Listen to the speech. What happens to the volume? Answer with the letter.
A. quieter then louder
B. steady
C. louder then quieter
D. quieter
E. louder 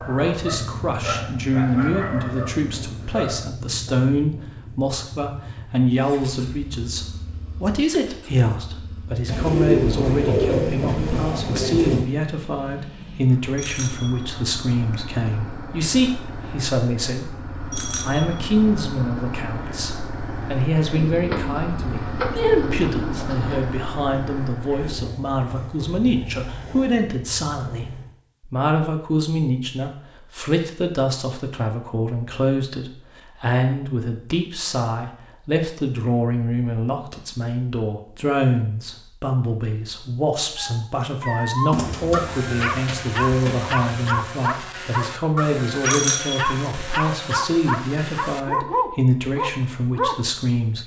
B.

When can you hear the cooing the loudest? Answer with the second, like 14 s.
10 s.